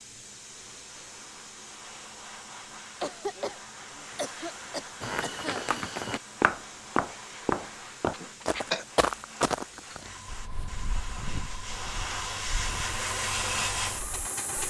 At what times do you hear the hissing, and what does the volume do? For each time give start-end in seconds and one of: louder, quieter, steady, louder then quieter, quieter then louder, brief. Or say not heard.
0.0-14.6 louder.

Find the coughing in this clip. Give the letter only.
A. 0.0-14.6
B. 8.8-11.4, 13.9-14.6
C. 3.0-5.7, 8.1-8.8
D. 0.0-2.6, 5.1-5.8
C.